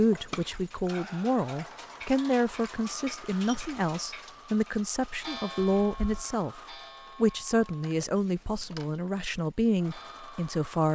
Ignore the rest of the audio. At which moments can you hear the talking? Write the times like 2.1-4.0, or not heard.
0.0-6.6, 7.2-10.9.